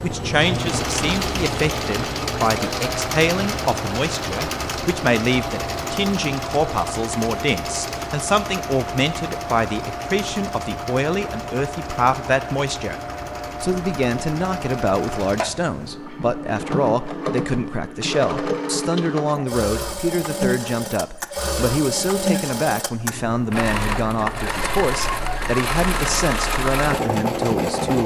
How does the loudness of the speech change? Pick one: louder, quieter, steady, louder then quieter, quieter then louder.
steady.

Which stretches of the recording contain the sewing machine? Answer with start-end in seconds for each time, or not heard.
0.0-28.0.